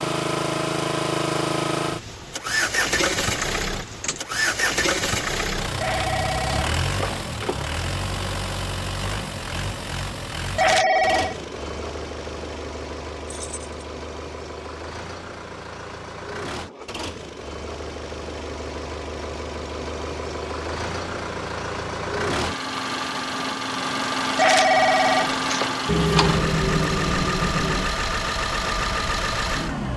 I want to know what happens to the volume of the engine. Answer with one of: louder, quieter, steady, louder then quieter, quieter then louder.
quieter then louder.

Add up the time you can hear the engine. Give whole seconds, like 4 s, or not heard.
30 s.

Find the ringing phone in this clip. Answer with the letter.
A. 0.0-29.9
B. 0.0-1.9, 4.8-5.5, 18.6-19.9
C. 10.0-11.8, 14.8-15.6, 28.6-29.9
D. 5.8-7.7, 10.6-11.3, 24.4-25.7
D.